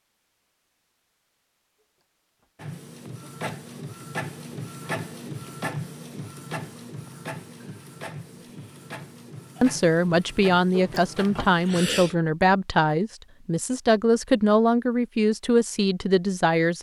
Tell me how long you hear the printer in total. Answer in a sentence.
You can hear the printer for 9 seconds altogether.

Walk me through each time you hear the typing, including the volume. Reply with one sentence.
The typing can't be heard in this clip.